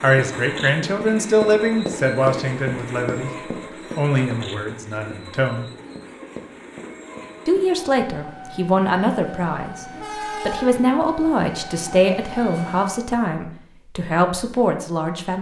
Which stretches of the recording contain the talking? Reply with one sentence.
The talking can be heard from 0.0 to 5.7 s and from 7.5 to 15.3 s.